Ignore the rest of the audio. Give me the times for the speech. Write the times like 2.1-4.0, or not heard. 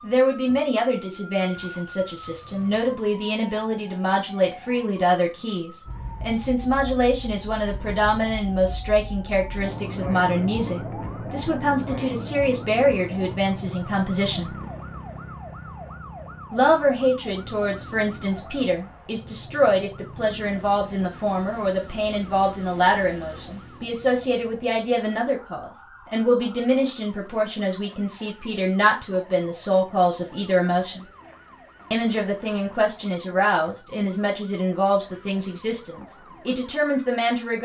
0.0-14.5, 16.5-31.1, 31.9-37.6.